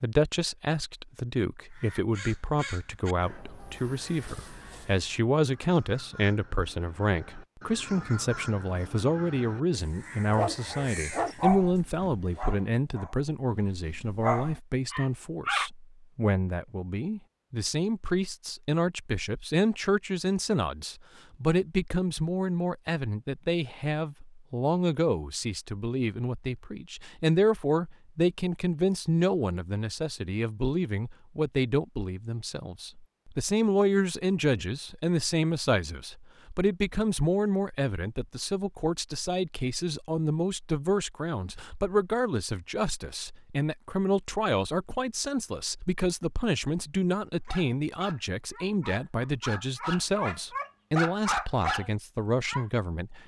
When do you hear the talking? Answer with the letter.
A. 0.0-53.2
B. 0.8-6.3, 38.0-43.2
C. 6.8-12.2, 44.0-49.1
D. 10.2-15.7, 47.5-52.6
A.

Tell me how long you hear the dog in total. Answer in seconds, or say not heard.
11 s.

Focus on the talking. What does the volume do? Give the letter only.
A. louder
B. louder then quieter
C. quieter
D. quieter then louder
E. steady
E.